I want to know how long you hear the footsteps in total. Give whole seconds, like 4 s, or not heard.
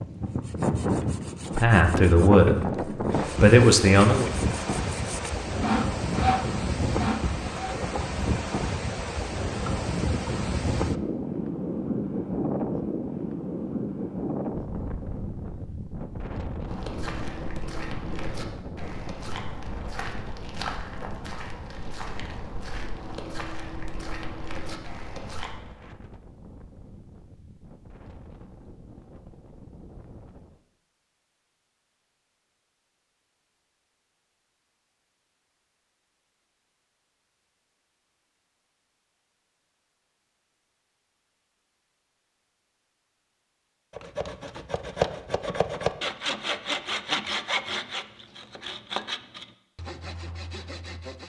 9 s.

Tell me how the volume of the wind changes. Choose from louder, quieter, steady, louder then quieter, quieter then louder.
quieter.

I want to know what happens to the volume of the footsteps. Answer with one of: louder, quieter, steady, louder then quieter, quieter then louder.
steady.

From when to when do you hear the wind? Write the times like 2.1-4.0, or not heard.
0.0-30.6.